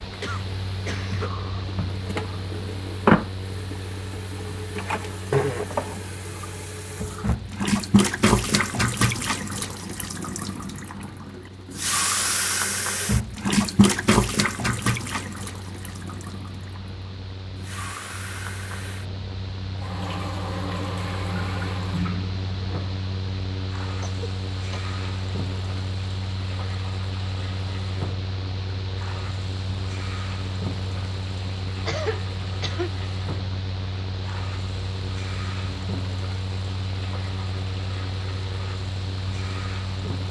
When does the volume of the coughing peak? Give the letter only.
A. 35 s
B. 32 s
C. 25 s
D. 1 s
B.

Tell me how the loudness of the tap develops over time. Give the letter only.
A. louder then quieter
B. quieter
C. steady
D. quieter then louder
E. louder
B.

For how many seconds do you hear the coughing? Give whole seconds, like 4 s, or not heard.
3 s.